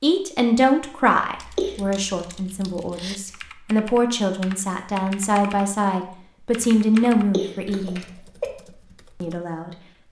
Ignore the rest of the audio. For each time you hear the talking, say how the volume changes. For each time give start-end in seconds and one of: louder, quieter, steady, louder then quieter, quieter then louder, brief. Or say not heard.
0.0-8.1 quieter then louder
9.2-10.0 brief.